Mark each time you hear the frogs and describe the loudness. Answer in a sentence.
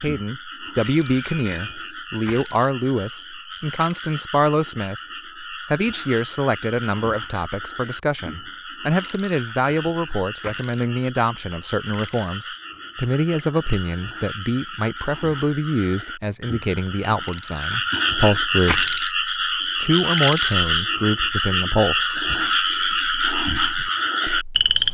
You can hear the frogs from 0.0 to 24.8 s, getting louder.